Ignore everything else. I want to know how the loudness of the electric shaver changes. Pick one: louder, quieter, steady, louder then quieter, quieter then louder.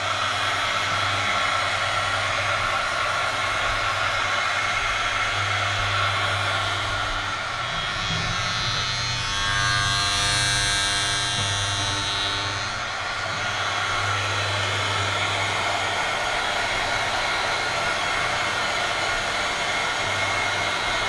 louder then quieter.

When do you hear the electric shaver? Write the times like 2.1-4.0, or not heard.
0.0-21.0.